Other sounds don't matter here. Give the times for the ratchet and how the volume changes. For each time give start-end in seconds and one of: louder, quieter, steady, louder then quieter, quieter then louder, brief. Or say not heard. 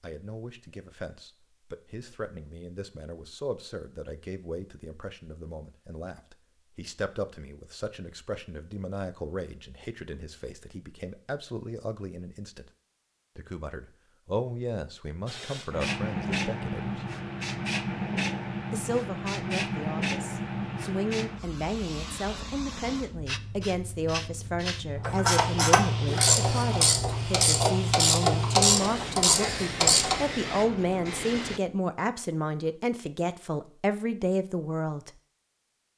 25.0-30.3 steady.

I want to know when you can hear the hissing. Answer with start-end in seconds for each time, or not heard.
15.2-31.6.